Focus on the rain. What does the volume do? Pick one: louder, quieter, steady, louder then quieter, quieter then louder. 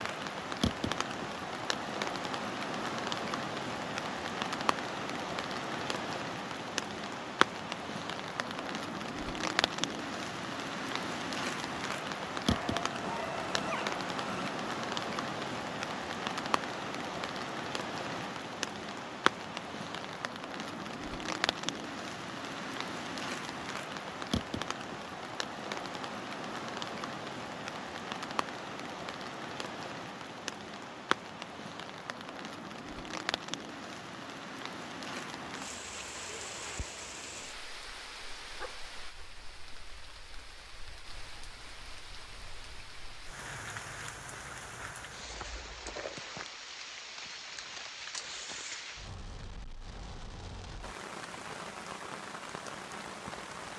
quieter.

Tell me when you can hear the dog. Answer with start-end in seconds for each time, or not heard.
12.4-14.5, 38.5-39.2.